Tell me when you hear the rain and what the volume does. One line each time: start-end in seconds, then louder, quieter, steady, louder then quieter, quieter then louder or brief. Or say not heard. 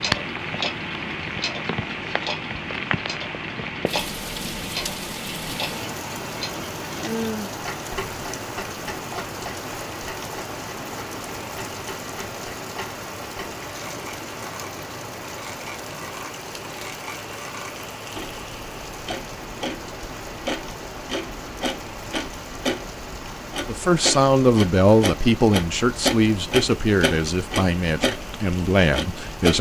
0.0-29.5 quieter.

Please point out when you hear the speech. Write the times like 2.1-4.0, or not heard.
23.6-29.5.